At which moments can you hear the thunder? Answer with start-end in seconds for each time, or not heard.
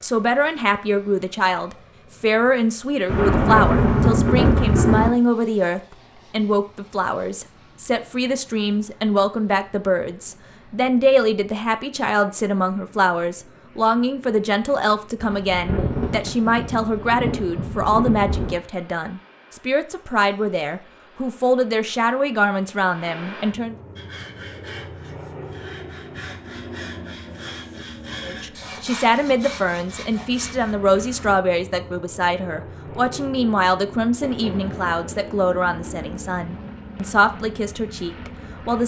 3.0-5.1, 15.2-18.6, 34.2-36.8.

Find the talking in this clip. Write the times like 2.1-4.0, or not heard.
0.0-23.8, 28.2-38.8.